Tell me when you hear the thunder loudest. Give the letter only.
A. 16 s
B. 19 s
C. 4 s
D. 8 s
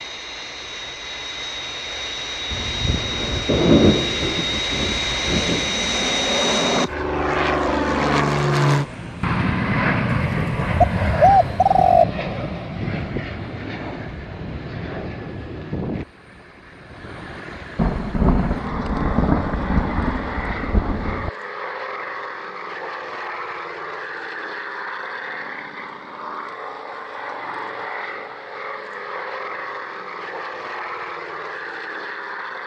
C.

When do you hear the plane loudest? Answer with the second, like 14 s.
8 s.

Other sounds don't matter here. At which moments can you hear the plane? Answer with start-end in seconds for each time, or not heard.
0.0-32.6.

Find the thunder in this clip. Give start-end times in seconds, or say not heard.
2.5-5.7, 17.8-21.3.